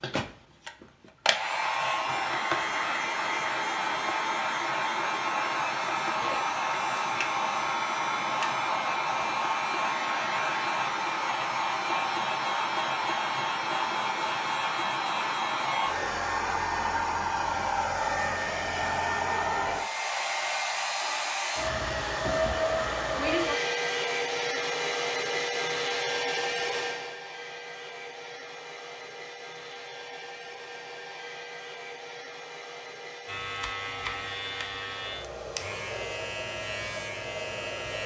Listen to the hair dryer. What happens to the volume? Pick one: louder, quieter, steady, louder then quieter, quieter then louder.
quieter.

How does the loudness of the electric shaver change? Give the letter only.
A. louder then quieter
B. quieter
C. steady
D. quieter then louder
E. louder
C.